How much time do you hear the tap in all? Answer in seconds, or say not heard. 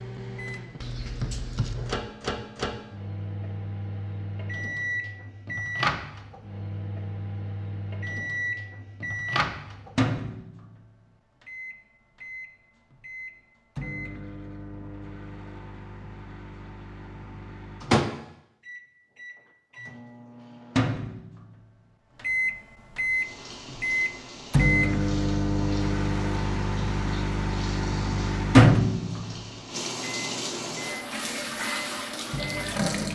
10 s.